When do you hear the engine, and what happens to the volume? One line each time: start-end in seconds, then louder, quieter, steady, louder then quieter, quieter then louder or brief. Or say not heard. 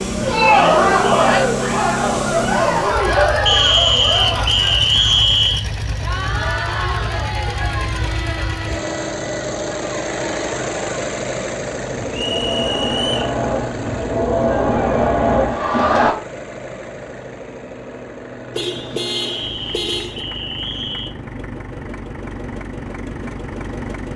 0.0-24.1 quieter.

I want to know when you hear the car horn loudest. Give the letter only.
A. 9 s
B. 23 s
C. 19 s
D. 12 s
C.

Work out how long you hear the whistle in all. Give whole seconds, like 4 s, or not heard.
5 s.